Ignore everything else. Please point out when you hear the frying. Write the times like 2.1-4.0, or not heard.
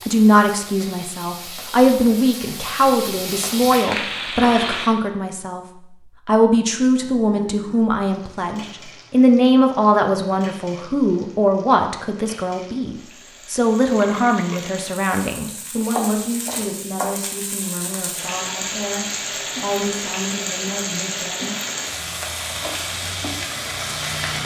0.0-4.9, 8.1-24.4.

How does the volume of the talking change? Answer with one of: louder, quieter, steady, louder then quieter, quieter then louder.
quieter.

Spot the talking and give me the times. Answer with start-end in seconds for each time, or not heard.
0.0-21.6.